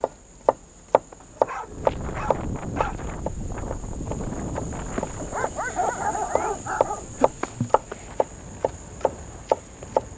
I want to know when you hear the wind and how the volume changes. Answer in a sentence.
You can hear the wind from 1.6 to 10.1 s, getting quieter.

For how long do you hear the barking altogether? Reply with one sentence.
The barking can be heard for 4 seconds in total.